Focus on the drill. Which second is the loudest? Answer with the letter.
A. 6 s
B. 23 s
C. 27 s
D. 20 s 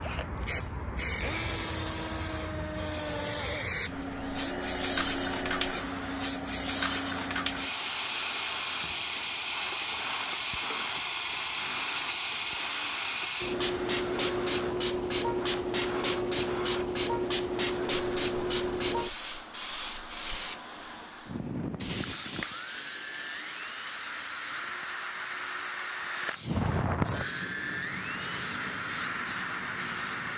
C.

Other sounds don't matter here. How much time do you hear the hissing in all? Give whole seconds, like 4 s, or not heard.
30 s.